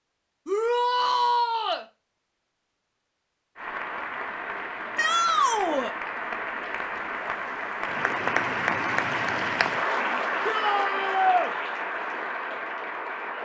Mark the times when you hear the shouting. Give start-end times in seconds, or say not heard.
0.5-1.9, 5.0-6.0, 10.4-11.5.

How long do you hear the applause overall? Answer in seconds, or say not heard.
10 s.